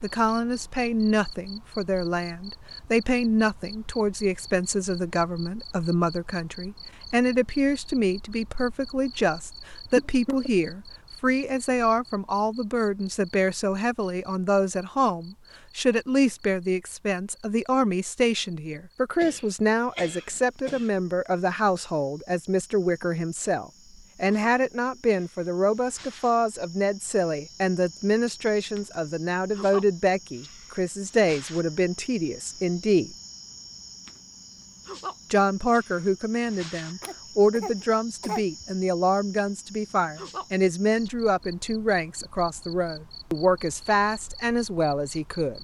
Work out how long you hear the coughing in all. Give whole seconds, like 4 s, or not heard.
4 s.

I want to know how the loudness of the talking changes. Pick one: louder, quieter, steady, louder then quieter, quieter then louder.
steady.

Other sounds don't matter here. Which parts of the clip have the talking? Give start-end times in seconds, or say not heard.
0.0-33.1, 35.3-45.5.